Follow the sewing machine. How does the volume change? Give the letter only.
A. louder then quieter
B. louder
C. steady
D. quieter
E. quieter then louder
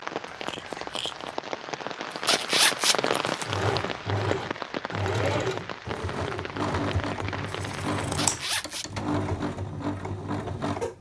C.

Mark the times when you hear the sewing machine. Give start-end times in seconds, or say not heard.
3.5-10.9.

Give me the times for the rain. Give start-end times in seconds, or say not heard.
0.0-8.4.